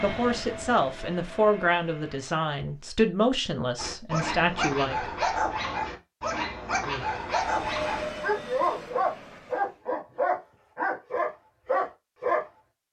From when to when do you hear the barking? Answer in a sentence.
You can hear the barking from 3.8 to 12.4 s.